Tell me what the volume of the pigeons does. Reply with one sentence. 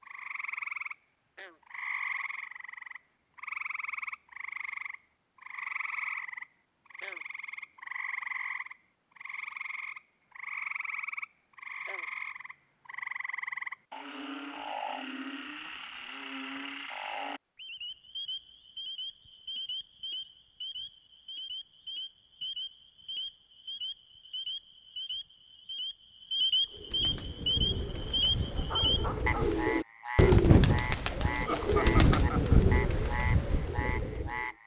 The volume of the pigeons goes up, then down.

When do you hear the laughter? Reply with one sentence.
The laughter can be heard from 31.4 to 32.6 s.